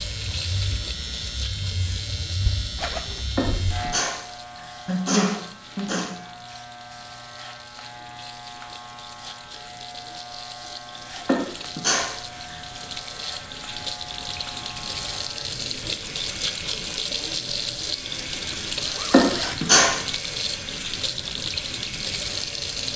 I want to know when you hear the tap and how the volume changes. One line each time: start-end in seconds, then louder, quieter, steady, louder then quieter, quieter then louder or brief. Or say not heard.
0.0-22.9 quieter then louder.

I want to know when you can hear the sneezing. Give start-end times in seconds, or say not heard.
3.4-4.2, 4.8-6.0, 11.2-12.6, 19.1-19.9.